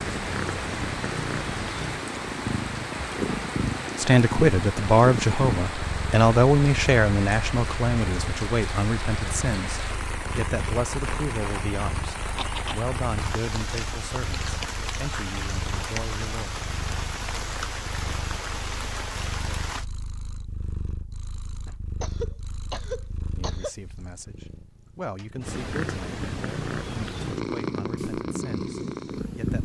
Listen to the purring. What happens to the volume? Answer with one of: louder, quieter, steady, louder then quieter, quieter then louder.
quieter then louder.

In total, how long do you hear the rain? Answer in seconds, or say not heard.
20 s.